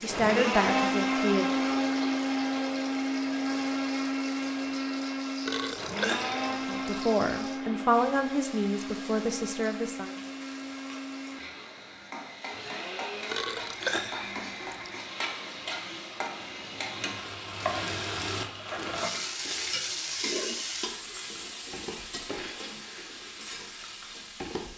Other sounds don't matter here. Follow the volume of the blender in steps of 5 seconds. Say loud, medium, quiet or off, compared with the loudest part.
loud, medium, quiet, quiet, quiet.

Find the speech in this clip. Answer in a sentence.
You can hear the speech from 0.0 to 1.5 s and from 6.5 to 10.1 s.